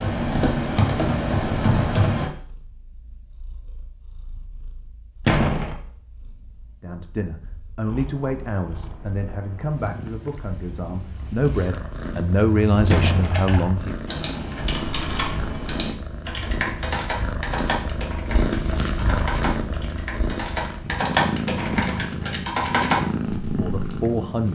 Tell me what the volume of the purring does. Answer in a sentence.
The loudness of the purring goes up.